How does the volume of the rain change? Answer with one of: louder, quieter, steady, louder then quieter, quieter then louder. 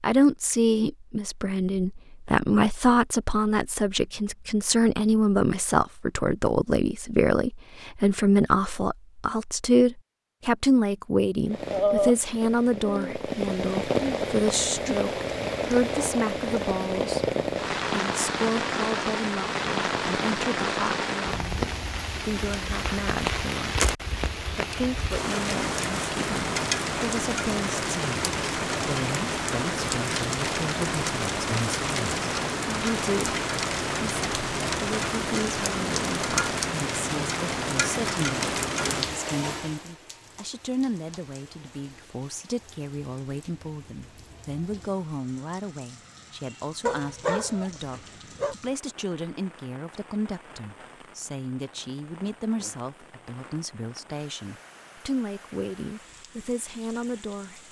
quieter.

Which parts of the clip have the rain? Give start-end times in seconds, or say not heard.
11.4-57.6.